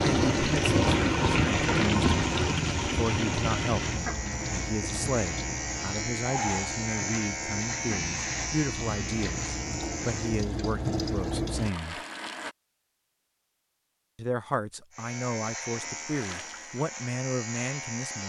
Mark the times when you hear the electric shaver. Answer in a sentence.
The electric shaver can be heard from 0.0 to 10.5 s and from 14.9 to 18.2 s.